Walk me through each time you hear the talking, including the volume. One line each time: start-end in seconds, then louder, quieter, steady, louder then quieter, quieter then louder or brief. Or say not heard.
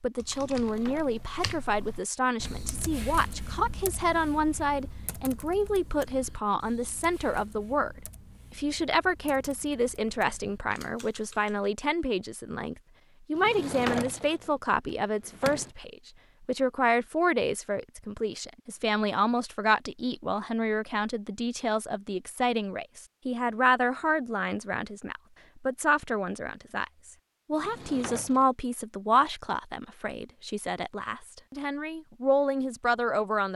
0.0-33.5 steady.